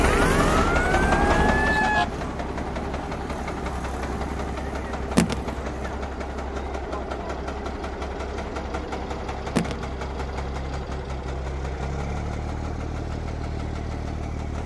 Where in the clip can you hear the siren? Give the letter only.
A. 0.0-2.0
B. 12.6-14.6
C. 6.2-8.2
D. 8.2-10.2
A.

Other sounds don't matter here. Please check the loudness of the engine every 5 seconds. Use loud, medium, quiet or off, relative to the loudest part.
loud, medium, medium.